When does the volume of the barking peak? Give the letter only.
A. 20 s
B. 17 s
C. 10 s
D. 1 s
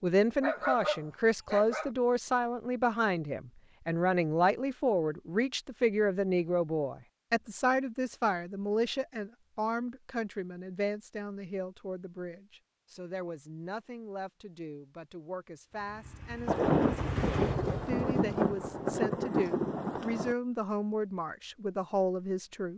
D.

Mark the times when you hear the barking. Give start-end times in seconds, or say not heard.
0.4-1.9.